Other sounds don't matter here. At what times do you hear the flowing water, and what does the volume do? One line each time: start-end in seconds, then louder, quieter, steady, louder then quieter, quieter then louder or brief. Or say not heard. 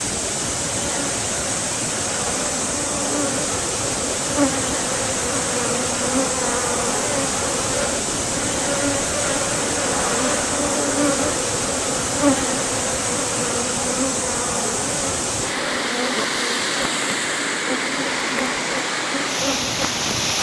0.0-20.3 steady.